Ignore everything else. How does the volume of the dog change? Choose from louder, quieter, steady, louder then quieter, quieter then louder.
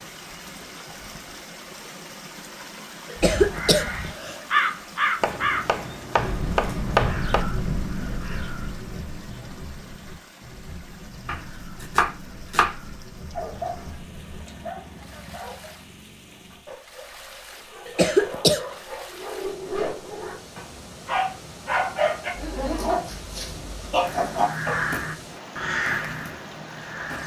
quieter then louder.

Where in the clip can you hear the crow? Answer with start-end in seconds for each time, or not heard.
3.1-14.6, 24.0-27.2.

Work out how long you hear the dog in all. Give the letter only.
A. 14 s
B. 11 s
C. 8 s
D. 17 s
B.